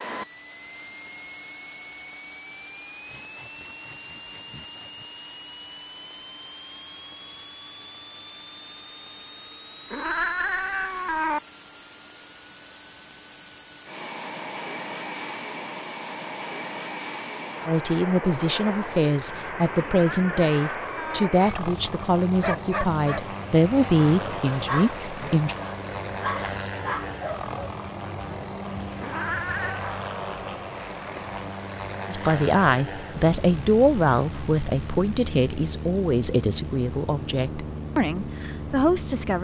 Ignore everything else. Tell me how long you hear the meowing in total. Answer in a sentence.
You can hear the meowing for 4 seconds altogether.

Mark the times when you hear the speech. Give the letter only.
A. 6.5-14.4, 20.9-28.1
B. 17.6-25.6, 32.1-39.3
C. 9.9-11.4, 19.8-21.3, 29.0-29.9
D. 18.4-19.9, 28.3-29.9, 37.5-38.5
B.